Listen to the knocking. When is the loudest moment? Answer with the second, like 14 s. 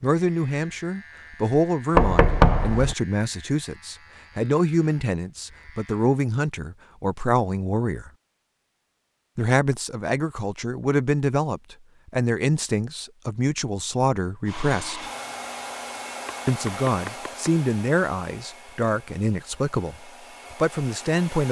2 s.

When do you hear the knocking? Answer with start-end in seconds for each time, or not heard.
1.9-3.0, 16.2-17.5.